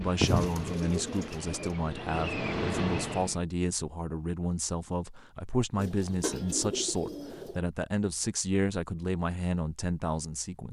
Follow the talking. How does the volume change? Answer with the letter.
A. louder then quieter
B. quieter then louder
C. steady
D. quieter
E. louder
C.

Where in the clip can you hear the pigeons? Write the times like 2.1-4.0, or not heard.
0.2-1.8, 5.8-7.6.